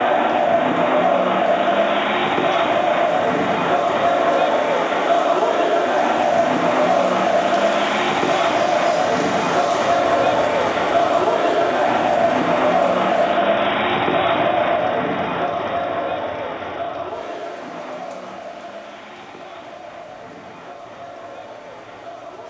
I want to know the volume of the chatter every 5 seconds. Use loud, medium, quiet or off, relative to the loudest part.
loud, loud, loud, medium, quiet.